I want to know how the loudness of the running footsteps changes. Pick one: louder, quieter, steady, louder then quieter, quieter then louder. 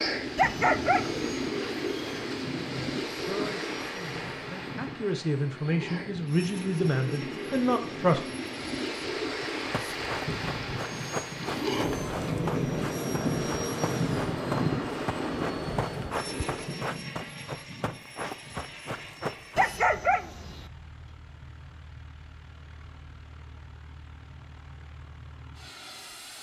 steady.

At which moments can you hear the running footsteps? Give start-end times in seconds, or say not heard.
9.4-19.7.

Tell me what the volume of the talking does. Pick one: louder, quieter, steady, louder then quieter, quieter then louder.
louder.